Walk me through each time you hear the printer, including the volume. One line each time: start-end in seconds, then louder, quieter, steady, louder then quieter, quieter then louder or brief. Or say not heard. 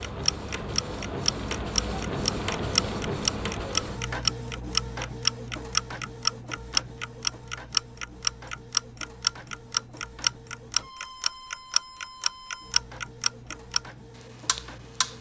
0.0-15.1 quieter.